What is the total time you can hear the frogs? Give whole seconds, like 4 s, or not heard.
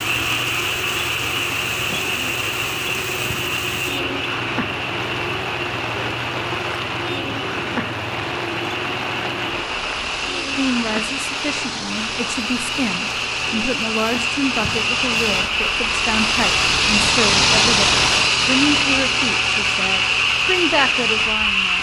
22 s.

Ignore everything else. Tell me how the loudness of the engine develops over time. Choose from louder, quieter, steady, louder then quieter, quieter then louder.
louder.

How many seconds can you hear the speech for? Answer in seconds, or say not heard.
11 s.